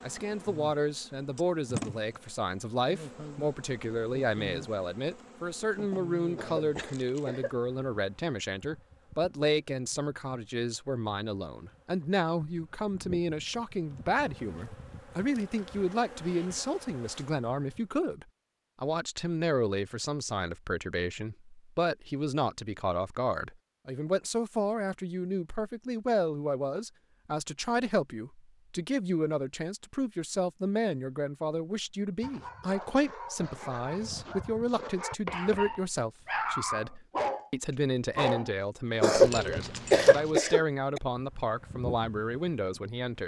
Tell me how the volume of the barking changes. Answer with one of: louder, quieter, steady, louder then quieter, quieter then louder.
louder then quieter.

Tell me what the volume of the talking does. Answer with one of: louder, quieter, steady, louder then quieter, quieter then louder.
steady.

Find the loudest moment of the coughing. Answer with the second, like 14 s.
39 s.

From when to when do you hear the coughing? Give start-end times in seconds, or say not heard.
6.3-7.5, 39.0-41.0.